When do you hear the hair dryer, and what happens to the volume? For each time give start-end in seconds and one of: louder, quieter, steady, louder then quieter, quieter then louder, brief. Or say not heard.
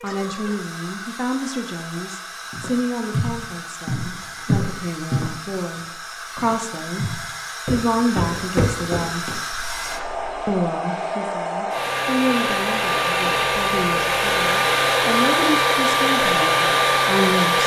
0.0-17.6 louder.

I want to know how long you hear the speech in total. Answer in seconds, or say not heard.
16 s.